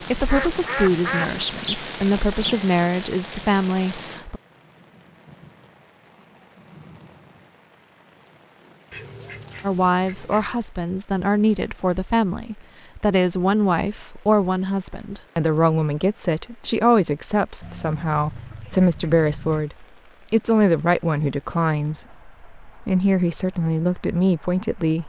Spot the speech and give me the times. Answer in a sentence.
You can hear the speech from 0.0 to 4.4 s and from 9.6 to 25.0 s.